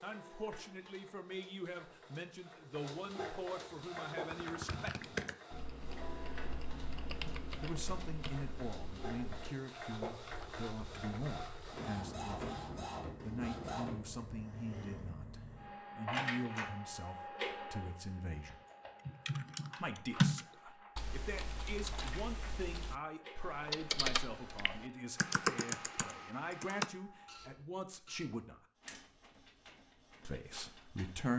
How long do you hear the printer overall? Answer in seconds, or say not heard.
31 s.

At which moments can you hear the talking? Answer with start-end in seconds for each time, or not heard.
0.0-5.1, 7.6-12.3, 13.2-18.6, 19.8-28.6, 30.2-31.3.